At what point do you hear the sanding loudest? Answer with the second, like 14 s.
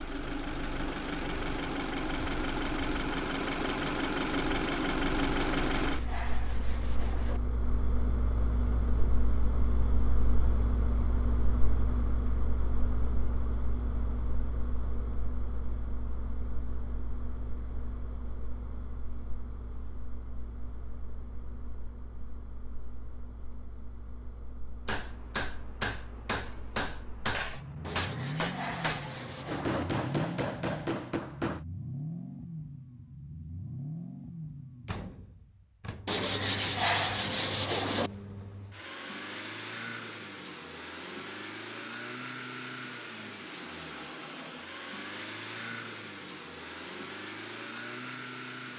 37 s.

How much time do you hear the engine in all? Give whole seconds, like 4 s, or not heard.
49 s.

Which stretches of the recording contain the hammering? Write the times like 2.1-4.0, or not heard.
24.9-31.6.